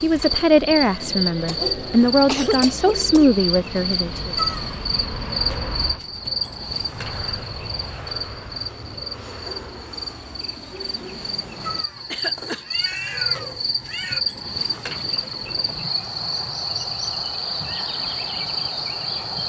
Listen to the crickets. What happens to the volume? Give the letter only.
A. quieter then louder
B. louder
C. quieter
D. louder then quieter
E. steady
A.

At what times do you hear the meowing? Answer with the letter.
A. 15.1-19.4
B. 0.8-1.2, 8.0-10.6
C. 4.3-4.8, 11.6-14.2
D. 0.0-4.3
C.